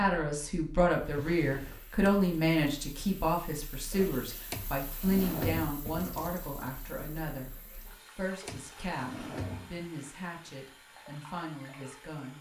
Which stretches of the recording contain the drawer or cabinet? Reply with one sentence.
You can hear the drawer or cabinet from 1.1 to 2.1 s, from 4.5 to 5.8 s and from 8.4 to 9.9 s.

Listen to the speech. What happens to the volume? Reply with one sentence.
The loudness of the speech goes down.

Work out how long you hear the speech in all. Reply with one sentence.
The speech can be heard for 12 seconds in total.